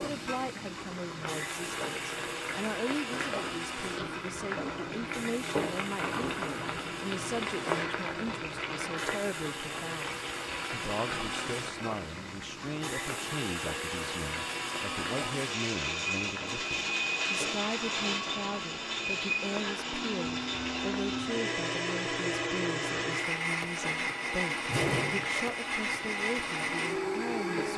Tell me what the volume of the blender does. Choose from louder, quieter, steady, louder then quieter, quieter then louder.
louder.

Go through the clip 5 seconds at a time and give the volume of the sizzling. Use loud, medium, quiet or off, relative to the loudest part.
loud, loud, medium, medium, medium, medium.